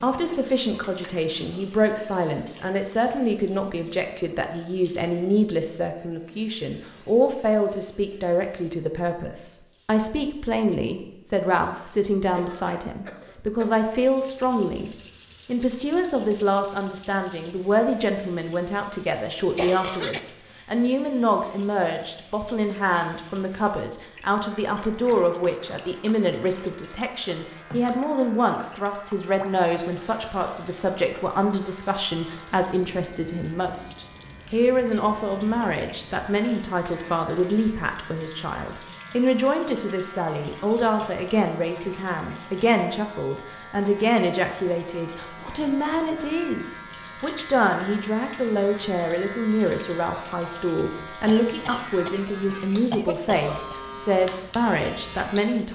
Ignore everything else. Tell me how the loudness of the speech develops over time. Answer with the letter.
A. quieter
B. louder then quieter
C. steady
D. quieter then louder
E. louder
C.